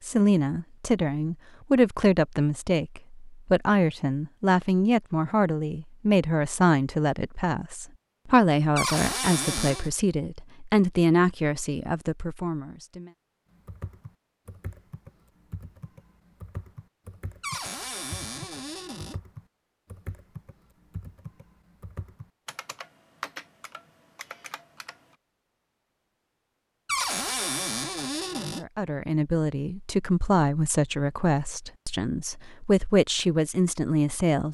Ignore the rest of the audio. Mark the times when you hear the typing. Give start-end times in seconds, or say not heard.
13.5-25.1.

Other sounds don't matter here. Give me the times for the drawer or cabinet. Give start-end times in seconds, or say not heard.
8.8-9.9, 17.4-19.1, 26.9-28.6.